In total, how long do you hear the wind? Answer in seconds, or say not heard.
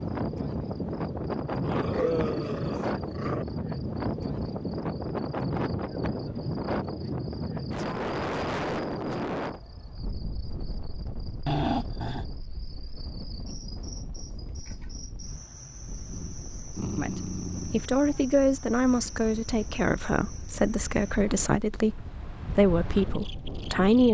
24 s.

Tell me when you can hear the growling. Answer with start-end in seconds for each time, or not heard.
1.6-3.5, 11.4-12.2, 16.1-17.9.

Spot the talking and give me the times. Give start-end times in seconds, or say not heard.
16.9-24.0.